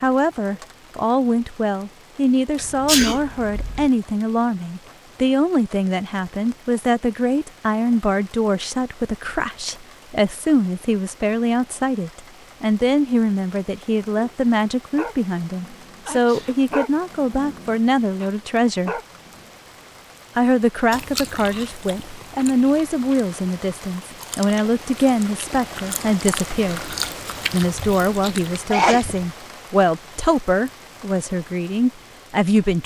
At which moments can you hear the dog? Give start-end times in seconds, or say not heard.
14.2-19.5.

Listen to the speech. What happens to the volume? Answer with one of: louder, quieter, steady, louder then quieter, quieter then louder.
steady.